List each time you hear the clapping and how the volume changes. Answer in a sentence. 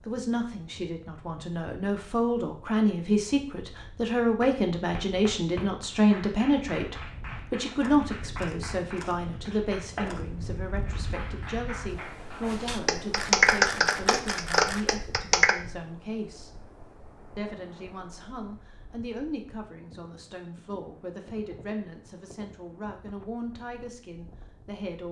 The clapping can be heard from 4.4 to 15.6 s, getting louder.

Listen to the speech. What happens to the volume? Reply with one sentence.
The volume of the speech goes down.